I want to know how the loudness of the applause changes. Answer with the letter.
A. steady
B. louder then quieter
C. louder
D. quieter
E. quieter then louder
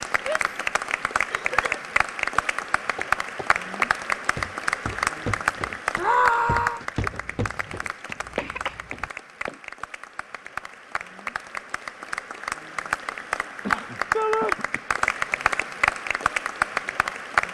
E.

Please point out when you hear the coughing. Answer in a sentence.
The coughing can be heard from 1.2 to 1.9 s, from 7.1 to 9.1 s and from 13.6 to 14.8 s.